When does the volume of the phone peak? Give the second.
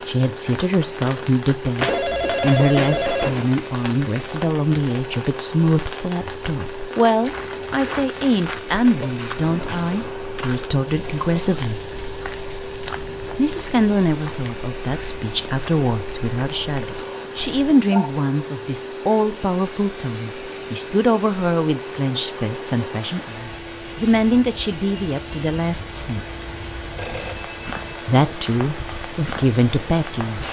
3 s.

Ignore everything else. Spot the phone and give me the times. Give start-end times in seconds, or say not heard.
1.8-3.5, 17.1-18.1, 26.9-28.0.